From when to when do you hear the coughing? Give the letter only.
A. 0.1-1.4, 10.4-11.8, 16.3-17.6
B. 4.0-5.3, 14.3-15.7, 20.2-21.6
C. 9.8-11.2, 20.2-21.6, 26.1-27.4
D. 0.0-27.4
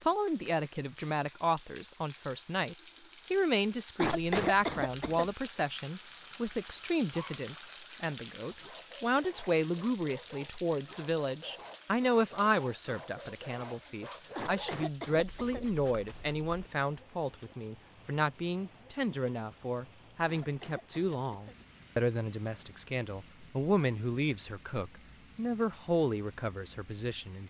B.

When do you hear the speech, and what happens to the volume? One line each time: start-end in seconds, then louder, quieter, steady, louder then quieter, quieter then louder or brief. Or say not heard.
0.0-27.4 steady.